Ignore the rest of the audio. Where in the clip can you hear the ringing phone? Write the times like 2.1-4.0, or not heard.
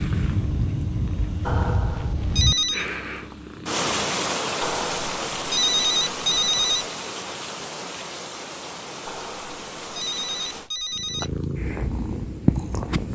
1.4-2.9, 4.6-6.8, 9.1-11.4.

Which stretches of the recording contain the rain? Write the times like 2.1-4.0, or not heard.
0.0-10.7.